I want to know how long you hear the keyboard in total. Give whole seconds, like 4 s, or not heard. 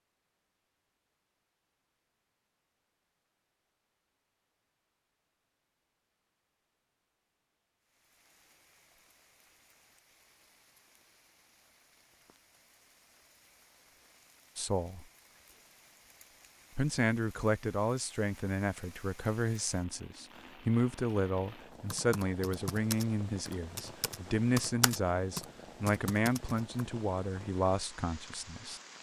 5 s.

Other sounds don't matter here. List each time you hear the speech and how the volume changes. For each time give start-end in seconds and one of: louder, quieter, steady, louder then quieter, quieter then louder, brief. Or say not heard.
14.6-15.1 brief
16.8-28.8 steady.